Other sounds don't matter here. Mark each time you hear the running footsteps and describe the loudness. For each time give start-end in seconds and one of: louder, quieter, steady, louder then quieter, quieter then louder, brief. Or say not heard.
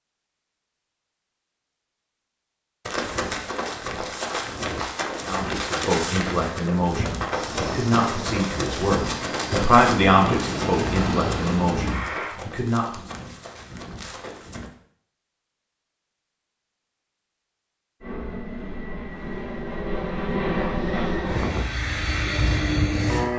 2.9-14.7 quieter.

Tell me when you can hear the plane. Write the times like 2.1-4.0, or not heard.
7.3-12.3, 18.0-23.3.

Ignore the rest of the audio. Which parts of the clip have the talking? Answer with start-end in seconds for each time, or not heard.
5.2-13.0.